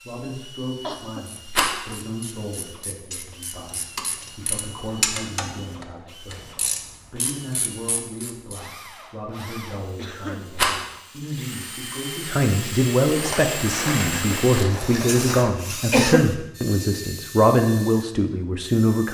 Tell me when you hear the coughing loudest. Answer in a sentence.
The loudest moment of the coughing is at 16 seconds.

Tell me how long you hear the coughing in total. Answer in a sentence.
You can hear the coughing for 3 seconds altogether.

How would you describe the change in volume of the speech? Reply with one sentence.
The volume of the speech goes up.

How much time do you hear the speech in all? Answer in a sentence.
You can hear the speech for 19 seconds altogether.